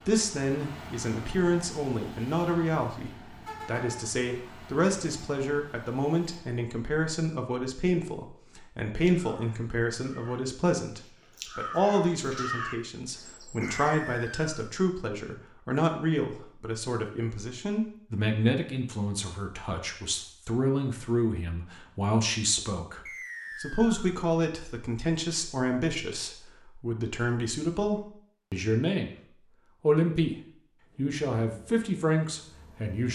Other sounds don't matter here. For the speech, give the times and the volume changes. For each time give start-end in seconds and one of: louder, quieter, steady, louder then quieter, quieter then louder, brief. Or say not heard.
0.1-29.1 steady
29.8-30.4 brief
30.9-33.1 brief.